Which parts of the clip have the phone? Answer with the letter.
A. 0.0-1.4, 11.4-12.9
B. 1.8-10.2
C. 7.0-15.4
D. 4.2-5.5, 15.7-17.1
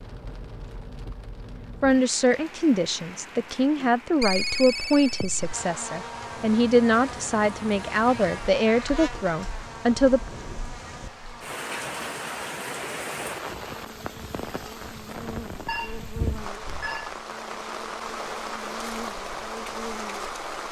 D.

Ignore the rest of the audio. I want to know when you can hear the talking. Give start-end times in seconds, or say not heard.
1.8-10.2.